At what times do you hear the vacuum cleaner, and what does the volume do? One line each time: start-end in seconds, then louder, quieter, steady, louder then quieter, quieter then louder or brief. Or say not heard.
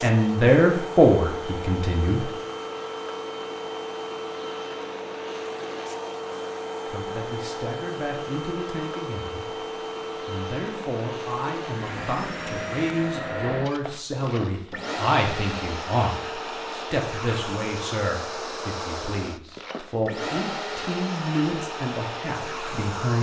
0.0-23.1 steady.